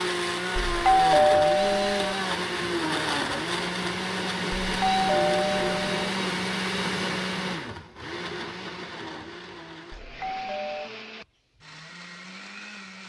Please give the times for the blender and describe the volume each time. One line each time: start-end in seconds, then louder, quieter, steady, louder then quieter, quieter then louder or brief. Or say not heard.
0.0-13.0 quieter.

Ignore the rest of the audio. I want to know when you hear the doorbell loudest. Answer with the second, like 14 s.
1 s.